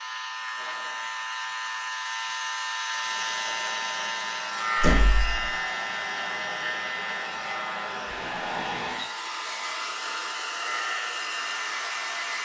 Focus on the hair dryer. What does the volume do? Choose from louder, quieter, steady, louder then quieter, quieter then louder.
louder.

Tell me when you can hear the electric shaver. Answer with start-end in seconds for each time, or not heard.
0.0-12.3.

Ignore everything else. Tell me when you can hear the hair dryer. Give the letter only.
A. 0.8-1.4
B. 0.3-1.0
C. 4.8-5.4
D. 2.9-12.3
D.